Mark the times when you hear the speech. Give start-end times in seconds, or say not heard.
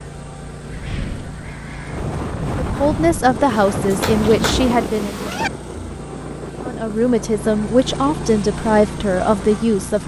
2.6-5.2, 6.6-10.0.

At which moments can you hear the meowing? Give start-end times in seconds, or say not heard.
3.5-5.5.